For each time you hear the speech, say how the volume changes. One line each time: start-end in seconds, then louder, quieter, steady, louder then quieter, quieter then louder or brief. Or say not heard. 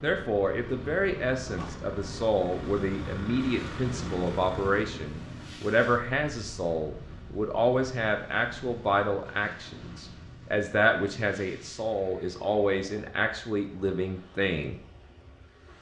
0.0-14.8 steady.